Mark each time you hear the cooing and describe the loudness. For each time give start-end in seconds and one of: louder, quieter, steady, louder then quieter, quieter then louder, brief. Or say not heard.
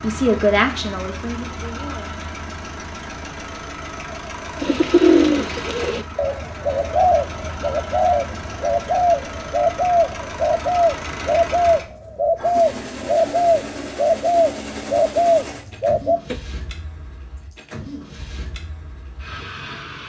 4.6-16.4 steady.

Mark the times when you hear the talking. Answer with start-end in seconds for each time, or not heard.
0.0-2.1.